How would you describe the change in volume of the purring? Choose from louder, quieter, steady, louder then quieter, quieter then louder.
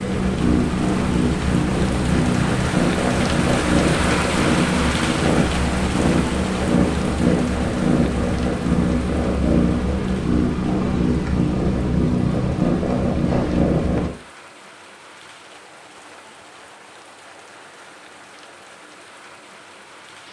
steady.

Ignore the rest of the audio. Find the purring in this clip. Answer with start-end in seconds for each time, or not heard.
0.0-14.1.